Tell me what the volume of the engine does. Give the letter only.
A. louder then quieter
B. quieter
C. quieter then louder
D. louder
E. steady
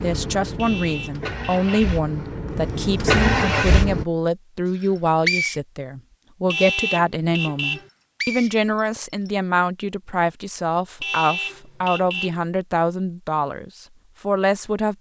D.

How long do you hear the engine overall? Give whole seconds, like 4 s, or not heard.
4 s.